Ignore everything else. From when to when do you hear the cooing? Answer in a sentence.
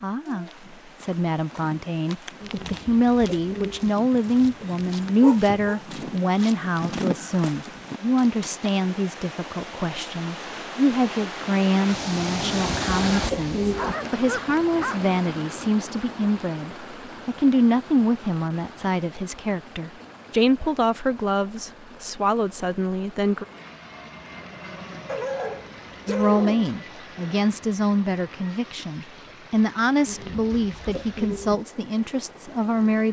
The cooing can be heard from 2.4 to 3.9 s, from 12.5 to 13.9 s and from 30.1 to 31.6 s.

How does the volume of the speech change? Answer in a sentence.
The volume of the speech stays about the same.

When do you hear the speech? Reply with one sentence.
You can hear the speech from 0.0 to 23.4 s and from 26.1 to 33.0 s.